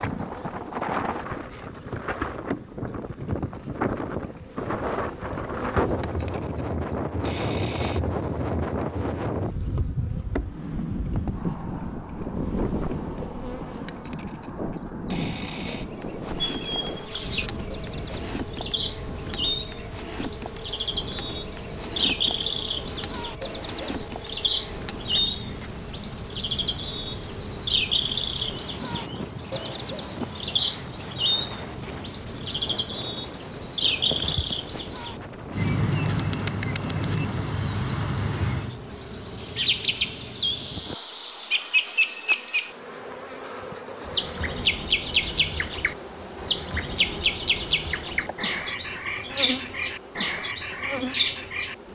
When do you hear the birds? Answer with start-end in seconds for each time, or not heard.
16.4-51.8.